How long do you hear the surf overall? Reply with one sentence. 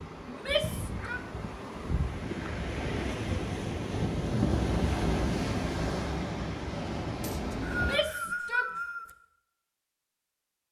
The surf can be heard for 8 seconds in total.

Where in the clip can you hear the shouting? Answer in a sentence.
You can hear the shouting from 0.2 to 1.2 s and from 7.7 to 8.7 s.